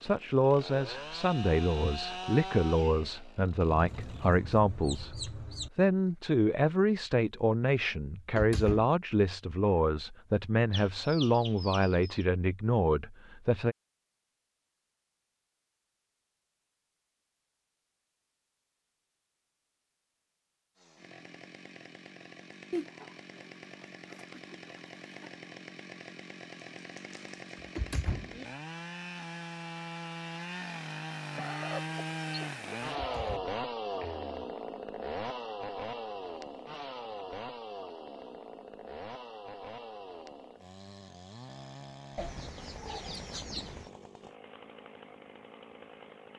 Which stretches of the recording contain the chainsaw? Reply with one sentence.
You can hear the chainsaw from 0.0 to 4.3 s and from 20.8 to 46.3 s.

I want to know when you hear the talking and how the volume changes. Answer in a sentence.
You can hear the talking from 0.0 to 13.8 s, at a steady volume.